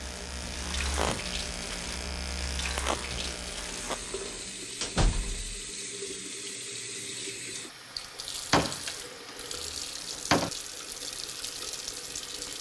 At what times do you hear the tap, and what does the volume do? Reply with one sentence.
You can hear the tap from 0.0 to 12.5 s, at a steady volume.